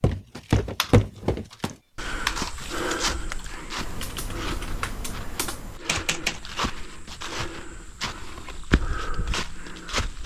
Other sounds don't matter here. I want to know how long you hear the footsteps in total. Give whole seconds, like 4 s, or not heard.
10 s.